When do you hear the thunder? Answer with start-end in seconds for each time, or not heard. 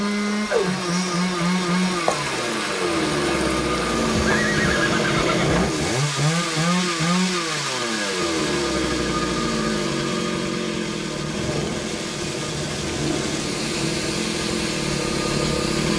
11.2-14.2.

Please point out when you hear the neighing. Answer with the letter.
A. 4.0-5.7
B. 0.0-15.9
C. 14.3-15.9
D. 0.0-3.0
A.